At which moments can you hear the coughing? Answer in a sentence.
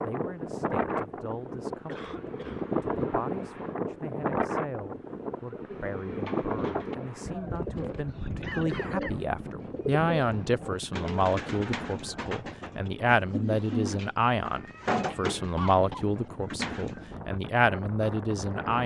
You can hear the coughing from 1.9 to 2.6 s, from 8.1 to 9.2 s and from 15.6 to 16.1 s.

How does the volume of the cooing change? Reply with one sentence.
The volume of the cooing goes up.